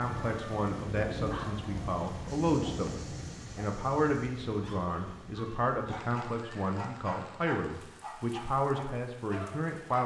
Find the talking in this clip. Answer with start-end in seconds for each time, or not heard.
0.0-10.0.